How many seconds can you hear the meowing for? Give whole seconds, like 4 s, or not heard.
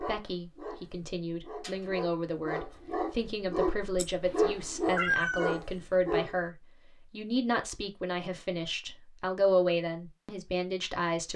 2 s.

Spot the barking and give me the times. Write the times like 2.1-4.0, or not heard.
0.0-6.5.